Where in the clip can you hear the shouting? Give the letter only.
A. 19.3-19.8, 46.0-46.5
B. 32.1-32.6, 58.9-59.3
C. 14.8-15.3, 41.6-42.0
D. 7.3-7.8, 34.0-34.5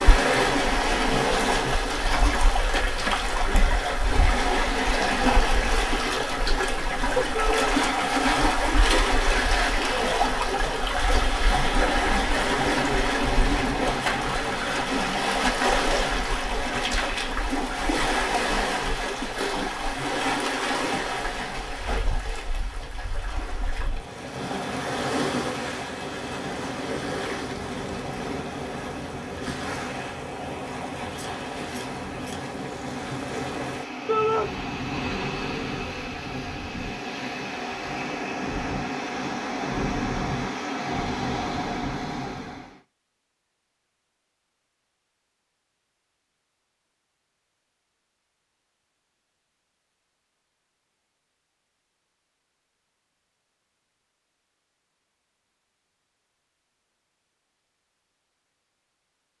D.